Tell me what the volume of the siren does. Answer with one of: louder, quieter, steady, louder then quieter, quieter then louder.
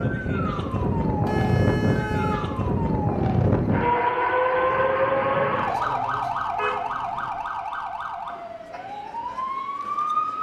quieter.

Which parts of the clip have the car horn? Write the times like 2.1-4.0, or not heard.
1.2-2.5, 5.8-7.3.